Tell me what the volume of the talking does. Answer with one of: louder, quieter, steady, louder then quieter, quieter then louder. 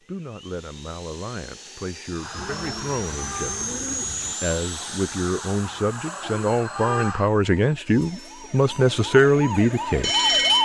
louder.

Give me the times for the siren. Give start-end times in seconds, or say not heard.
2.1-10.6.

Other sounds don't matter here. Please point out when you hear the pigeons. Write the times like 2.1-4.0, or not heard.
2.3-4.3.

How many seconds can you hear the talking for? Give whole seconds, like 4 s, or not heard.
10 s.